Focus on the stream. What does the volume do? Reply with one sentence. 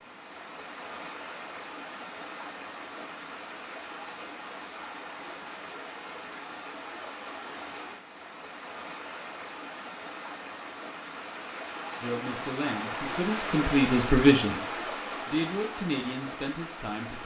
The loudness of the stream goes up.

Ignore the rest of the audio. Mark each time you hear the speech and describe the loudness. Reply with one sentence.
The speech can be heard from 12.0 to 17.2 s, getting louder then quieter.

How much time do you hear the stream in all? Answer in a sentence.
You can hear the stream for 17 seconds altogether.